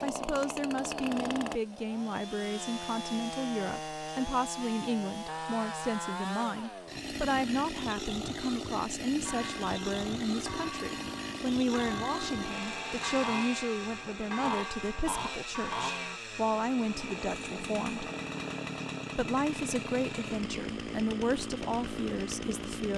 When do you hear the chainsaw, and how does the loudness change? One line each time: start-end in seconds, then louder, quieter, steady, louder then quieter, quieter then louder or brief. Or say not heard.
0.0-22.9 steady.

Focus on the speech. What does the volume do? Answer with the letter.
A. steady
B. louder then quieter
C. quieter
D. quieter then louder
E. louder
A.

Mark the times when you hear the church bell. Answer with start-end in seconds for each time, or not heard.
9.2-16.2.